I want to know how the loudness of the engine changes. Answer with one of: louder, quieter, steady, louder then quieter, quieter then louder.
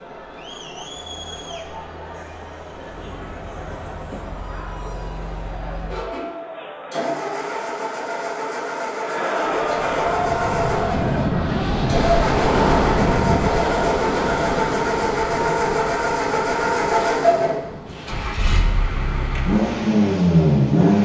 louder.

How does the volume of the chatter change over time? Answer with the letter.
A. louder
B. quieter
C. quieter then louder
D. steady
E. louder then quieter
A.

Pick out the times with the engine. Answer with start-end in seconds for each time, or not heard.
2.9-21.0.